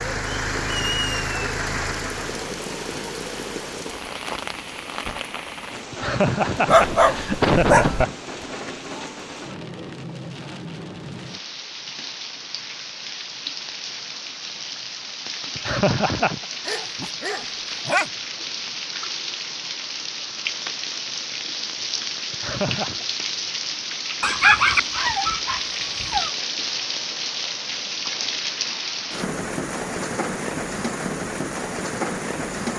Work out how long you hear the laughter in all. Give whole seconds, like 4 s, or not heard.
4 s.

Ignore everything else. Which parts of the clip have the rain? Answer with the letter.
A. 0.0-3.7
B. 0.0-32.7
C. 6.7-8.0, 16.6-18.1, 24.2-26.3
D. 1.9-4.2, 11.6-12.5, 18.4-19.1
B.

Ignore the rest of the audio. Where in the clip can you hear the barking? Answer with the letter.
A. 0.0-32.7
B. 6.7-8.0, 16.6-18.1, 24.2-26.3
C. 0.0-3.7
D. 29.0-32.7
B.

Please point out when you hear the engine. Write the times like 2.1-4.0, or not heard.
0.0-3.7.